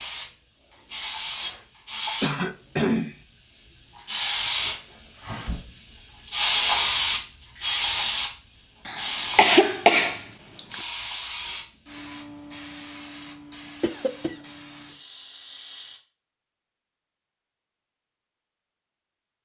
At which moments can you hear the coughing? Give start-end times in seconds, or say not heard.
2.2-3.1, 8.8-10.8, 13.8-14.3.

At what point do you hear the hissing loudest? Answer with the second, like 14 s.
7 s.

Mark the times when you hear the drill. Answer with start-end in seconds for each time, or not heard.
not heard.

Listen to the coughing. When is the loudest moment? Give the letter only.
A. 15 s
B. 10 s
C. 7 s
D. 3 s
B.